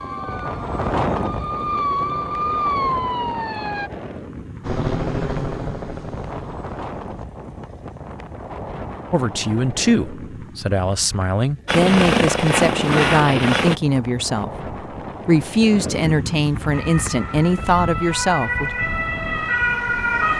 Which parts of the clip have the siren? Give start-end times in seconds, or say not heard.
0.0-3.9, 16.7-20.3.